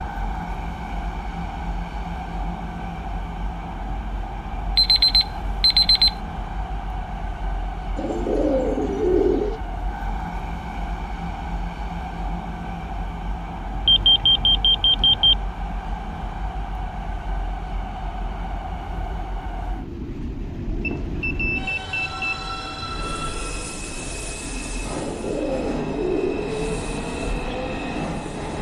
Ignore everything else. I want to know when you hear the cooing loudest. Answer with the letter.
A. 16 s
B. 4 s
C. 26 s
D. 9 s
D.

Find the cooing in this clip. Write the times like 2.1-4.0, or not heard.
8.0-9.6, 24.9-26.7.